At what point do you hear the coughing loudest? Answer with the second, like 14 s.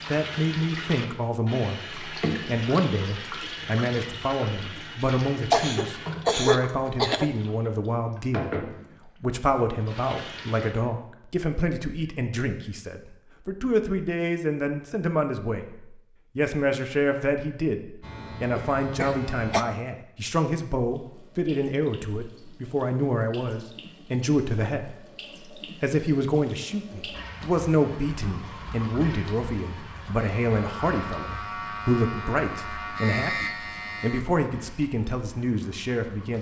6 s.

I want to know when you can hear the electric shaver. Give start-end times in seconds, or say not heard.
18.0-19.6, 30.4-34.2.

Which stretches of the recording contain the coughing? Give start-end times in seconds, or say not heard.
5.5-7.3, 18.6-19.6.